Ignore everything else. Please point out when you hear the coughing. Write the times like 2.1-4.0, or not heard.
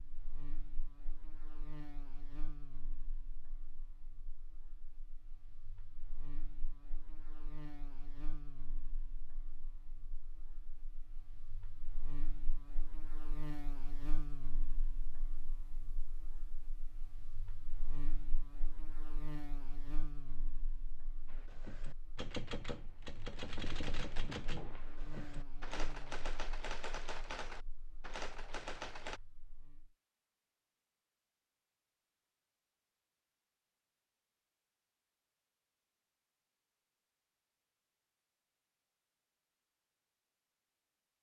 not heard.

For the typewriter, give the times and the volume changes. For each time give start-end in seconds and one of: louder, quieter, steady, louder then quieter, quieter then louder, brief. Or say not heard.
21.2-29.2 steady.